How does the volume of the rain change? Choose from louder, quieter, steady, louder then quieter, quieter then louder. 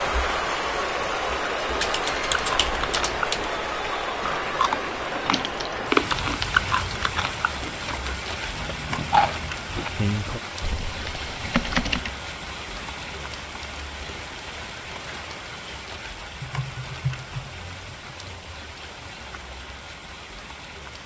quieter.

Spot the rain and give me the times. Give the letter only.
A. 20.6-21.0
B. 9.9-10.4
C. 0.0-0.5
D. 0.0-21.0
D.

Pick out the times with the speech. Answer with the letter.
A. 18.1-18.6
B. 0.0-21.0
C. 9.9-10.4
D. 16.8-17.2
C.